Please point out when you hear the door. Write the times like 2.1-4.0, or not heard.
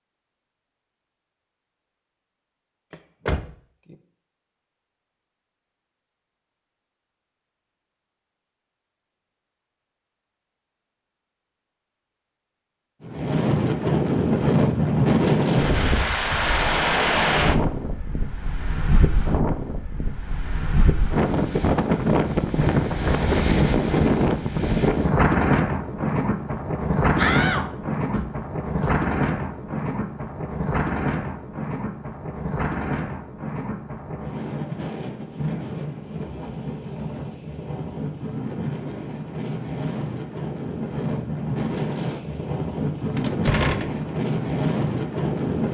2.9-4.0, 27.1-28.9, 43.1-44.0.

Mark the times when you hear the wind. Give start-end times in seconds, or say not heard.
13.1-45.6.